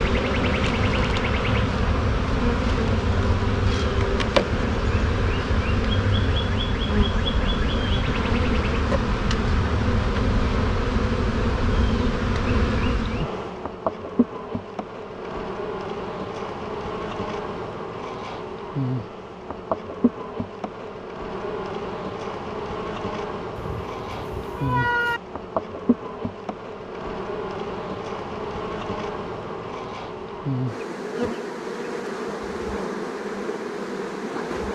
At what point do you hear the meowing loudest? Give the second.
25 s.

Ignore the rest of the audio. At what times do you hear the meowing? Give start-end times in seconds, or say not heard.
23.6-25.2.